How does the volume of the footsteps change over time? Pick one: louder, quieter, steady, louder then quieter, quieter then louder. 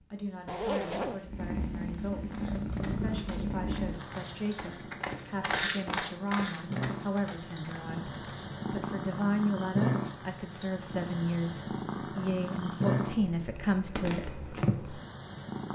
louder then quieter.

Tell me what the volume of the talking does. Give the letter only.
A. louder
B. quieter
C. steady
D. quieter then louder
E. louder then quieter
A.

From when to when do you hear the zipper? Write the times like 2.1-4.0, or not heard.
0.5-1.3.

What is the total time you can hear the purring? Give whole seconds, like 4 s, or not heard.
16 s.